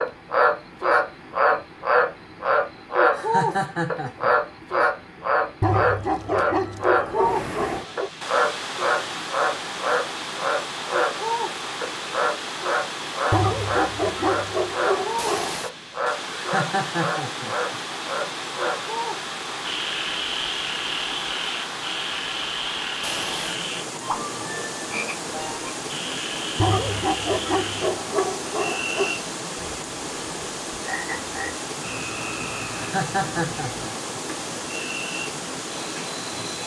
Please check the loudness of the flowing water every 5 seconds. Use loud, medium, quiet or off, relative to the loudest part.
quiet, loud, loud, loud, loud, loud, loud, loud.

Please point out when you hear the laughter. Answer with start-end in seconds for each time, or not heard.
3.1-4.3, 16.3-17.8, 32.8-34.2.